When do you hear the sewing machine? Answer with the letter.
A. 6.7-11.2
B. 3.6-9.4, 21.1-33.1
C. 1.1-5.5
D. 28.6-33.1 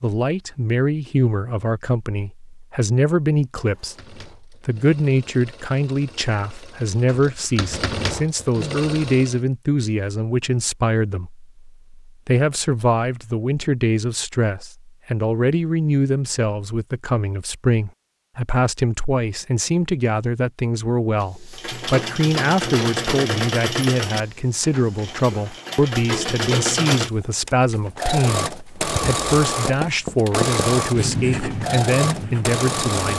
B.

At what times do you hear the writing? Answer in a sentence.
You can hear the writing from 28.6 to 33.1 s.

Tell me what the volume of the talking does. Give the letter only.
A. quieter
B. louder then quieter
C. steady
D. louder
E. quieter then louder
C.